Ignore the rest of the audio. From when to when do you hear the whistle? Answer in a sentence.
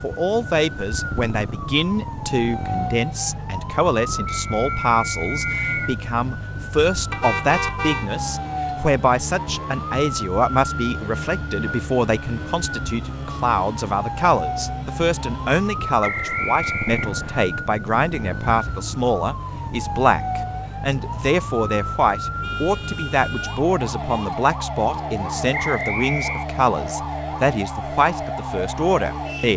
The whistle can be heard from 4.5 to 6.0 s, from 16.0 to 17.4 s and from 25.5 to 26.4 s.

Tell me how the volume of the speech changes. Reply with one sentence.
The loudness of the speech stays about the same.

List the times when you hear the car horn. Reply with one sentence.
The car horn can be heard from 7.1 to 8.1 s and from 22.4 to 24.3 s.